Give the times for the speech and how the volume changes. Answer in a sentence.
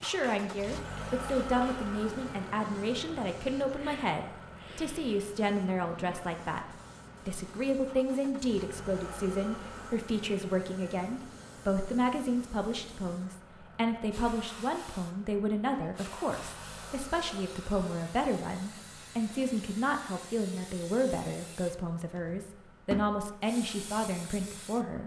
The speech can be heard from 0.0 to 25.0 s, at a steady volume.